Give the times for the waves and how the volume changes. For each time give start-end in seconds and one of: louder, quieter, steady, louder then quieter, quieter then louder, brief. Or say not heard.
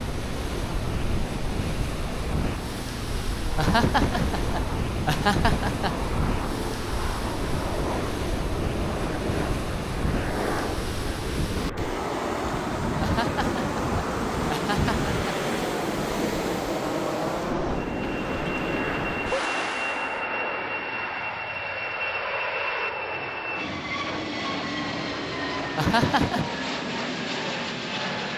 0.0-20.2 steady.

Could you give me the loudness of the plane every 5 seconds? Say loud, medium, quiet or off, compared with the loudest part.
medium, loud, loud, loud, loud, loud.